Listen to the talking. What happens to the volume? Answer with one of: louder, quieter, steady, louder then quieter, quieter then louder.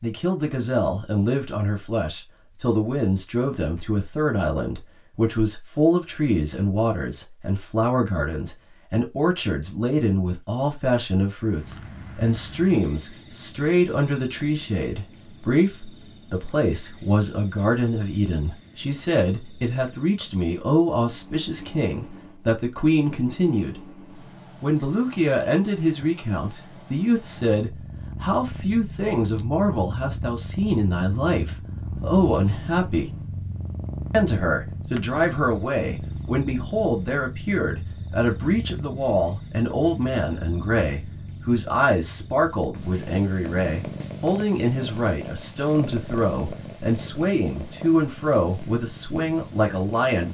steady.